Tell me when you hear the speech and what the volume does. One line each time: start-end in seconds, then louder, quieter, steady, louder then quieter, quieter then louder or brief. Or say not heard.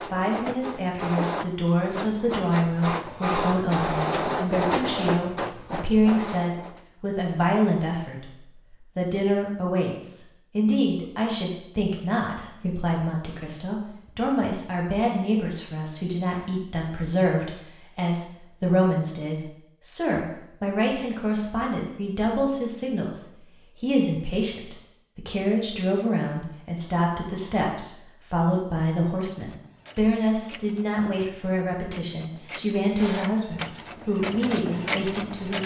0.1-35.6 steady.